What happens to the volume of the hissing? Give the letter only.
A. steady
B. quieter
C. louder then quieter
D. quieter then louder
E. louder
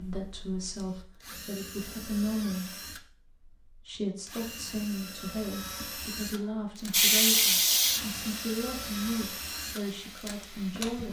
B.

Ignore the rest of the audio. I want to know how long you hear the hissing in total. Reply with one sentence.
You can hear the hissing for 4 seconds altogether.